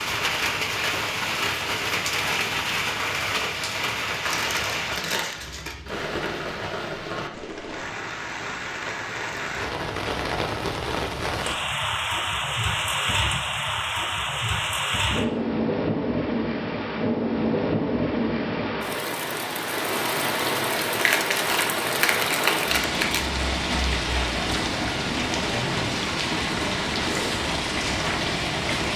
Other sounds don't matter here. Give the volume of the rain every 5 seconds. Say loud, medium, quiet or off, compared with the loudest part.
loud, medium, loud, loud, loud, loud.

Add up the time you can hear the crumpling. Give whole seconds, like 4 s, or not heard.
4 s.